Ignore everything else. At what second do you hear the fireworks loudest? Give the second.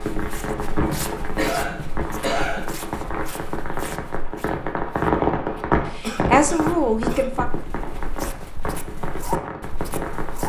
5 s.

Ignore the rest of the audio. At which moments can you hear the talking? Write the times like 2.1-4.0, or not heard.
6.0-7.5.